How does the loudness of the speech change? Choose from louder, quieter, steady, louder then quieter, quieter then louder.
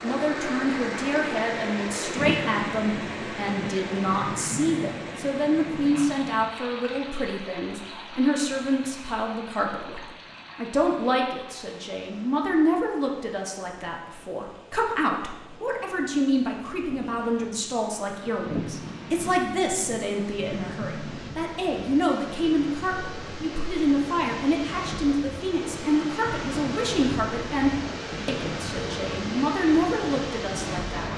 steady.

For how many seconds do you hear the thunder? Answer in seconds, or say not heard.
8 s.